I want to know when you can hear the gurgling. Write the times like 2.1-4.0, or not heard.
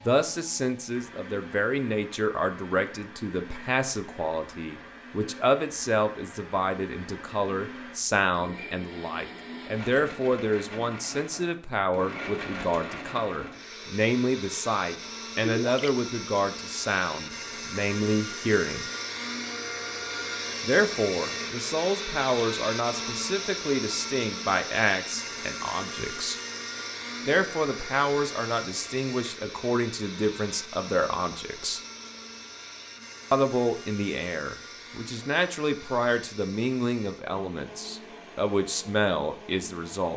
15.4-15.9.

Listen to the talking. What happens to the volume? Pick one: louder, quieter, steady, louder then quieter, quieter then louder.
steady.